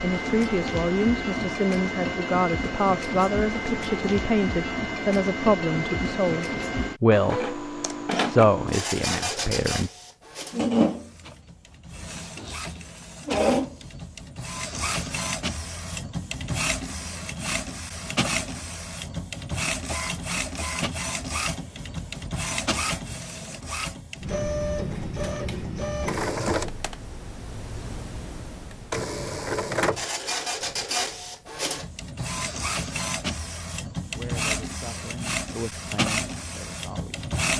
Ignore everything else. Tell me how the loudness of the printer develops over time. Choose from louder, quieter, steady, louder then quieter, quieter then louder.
steady.